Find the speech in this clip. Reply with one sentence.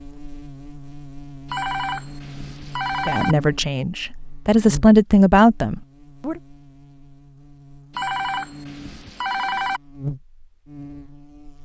You can hear the speech from 3.0 to 6.4 s.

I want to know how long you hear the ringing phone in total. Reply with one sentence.
You can hear the ringing phone for 4 seconds altogether.